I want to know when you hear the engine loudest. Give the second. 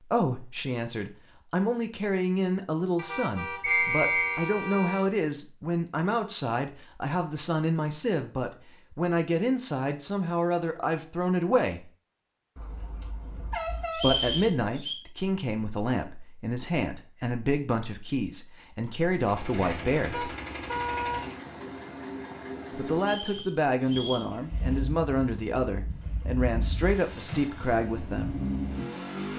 29 s.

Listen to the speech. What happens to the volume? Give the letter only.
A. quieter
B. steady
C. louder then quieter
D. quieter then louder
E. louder
B.